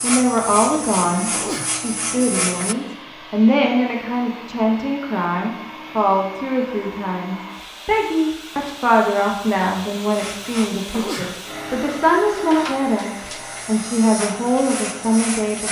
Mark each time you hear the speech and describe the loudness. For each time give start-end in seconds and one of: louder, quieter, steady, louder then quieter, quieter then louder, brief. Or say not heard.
0.0-15.6 steady.